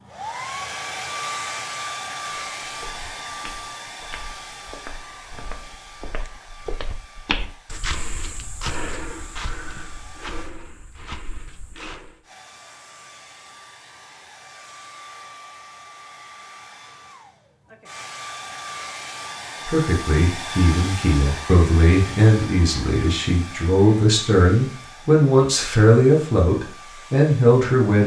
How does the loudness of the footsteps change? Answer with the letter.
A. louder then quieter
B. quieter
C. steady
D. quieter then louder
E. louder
A.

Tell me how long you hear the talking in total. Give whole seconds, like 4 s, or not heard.
8 s.